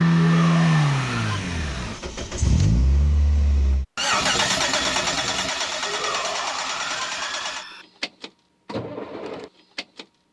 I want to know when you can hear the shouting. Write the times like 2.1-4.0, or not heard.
0.1-1.4, 5.8-7.8.